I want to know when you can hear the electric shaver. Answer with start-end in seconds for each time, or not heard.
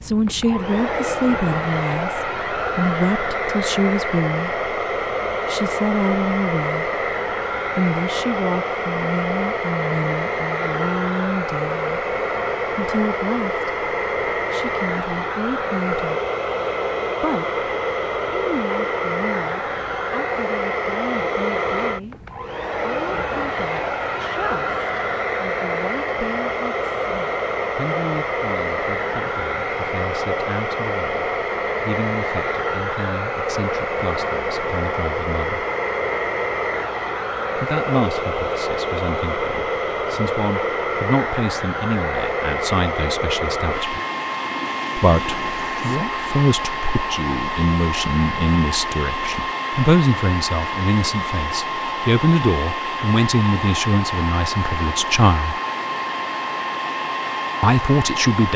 not heard.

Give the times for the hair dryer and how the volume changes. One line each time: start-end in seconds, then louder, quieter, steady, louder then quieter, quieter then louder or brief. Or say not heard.
0.0-58.5 steady.